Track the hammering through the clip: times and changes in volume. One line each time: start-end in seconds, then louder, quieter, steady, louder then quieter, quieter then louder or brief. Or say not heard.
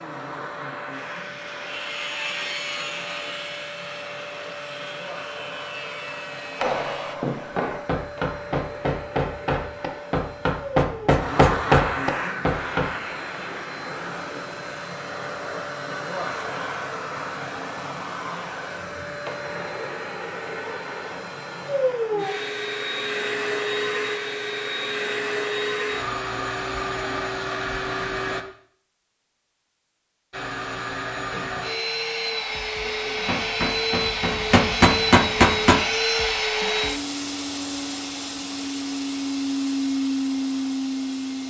6.5-12.8 louder
33.2-35.8 brief.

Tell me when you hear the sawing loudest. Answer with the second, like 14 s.
2 s.